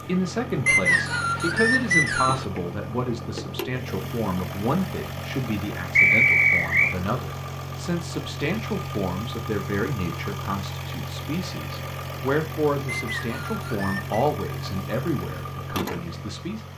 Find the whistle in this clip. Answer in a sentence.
The whistle can be heard from 0.7 to 2.5 s, from 6.0 to 7.0 s and from 12.8 to 14.2 s.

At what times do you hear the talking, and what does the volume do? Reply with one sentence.
You can hear the talking from 0.0 to 16.6 s, at a steady volume.